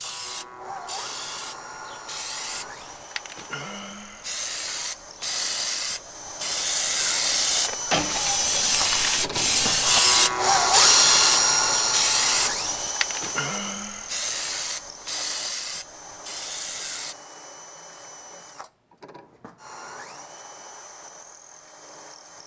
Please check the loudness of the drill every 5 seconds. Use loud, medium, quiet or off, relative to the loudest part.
quiet, medium, loud, quiet, quiet.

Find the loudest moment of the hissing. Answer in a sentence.
The volume of the hissing peaks at 10 seconds.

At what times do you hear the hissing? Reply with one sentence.
The hissing can be heard from 0.0 to 17.1 s.